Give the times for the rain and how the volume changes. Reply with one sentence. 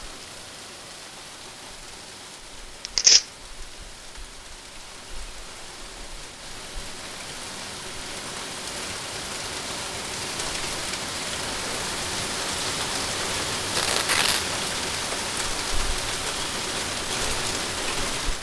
The rain can be heard from 0.0 to 18.3 s, getting louder.